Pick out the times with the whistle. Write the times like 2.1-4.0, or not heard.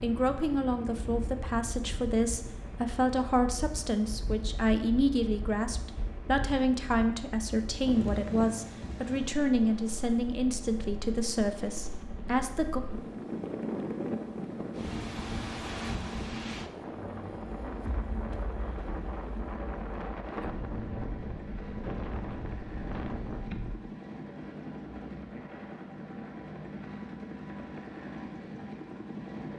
not heard.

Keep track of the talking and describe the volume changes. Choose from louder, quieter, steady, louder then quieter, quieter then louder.
steady.